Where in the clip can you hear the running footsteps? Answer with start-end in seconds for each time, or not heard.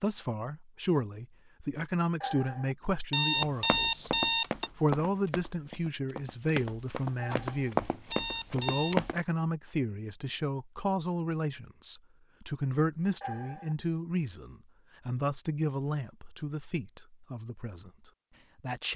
3.4-9.2.